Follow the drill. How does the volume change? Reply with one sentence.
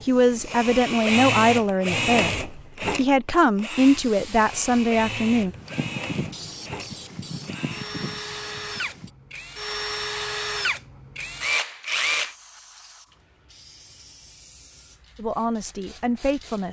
The loudness of the drill goes down, then up.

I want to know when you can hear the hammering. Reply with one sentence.
You can't hear the hammering here.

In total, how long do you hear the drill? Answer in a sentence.
You can hear the drill for 12 seconds altogether.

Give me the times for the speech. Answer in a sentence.
The speech can be heard from 0.0 to 5.5 s and from 15.2 to 16.6 s.